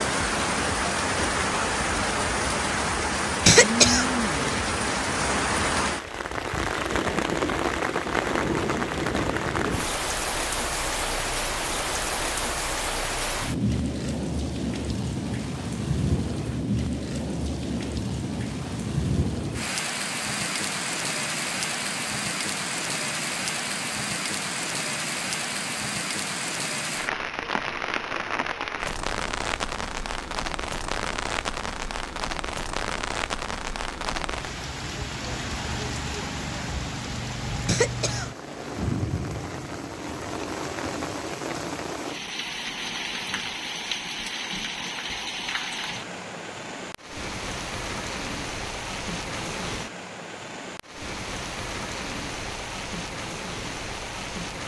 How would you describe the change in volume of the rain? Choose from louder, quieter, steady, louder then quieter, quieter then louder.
quieter.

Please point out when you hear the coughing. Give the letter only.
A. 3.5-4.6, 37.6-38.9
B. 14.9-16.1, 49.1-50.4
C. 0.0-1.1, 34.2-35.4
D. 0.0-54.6
A.